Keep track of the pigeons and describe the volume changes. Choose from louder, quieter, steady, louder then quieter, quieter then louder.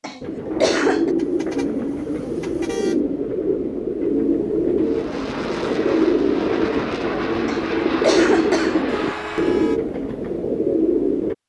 steady.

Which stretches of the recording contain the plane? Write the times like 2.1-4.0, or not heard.
4.8-9.7.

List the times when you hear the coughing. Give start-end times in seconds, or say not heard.
0.0-1.1, 7.5-8.8.